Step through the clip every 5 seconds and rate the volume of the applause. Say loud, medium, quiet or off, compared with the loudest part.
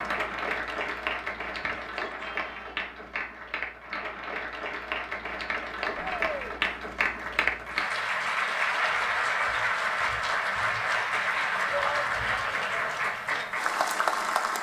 medium, loud, loud.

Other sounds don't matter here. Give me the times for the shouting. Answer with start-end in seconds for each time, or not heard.
1.6-2.8, 6.0-6.5, 11.7-13.0.